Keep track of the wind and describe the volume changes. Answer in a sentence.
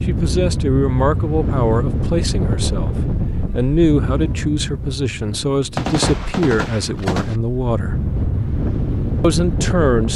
The loudness of the wind goes down, then up.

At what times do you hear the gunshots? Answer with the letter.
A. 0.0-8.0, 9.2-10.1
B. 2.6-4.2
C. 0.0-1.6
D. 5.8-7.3
D.